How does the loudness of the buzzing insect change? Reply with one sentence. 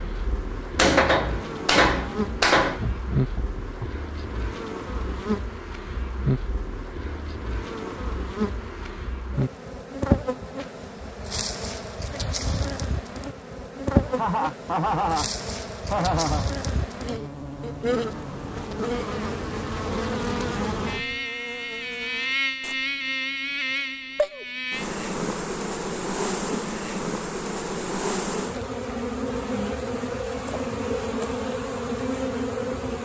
The loudness of the buzzing insect stays about the same.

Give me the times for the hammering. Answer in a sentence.
You can hear the hammering from 0.8 to 2.8 s.